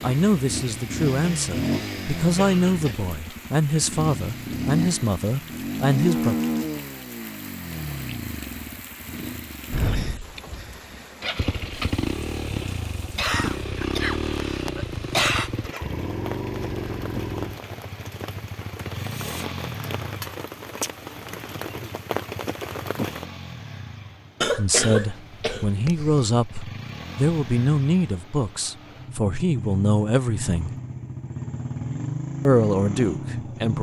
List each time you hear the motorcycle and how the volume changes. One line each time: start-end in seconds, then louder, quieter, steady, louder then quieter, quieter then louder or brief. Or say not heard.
0.0-33.7 quieter then louder.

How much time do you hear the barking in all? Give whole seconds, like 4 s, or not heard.
not heard.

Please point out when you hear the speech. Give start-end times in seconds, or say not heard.
0.0-6.3, 24.6-30.7, 32.5-33.7.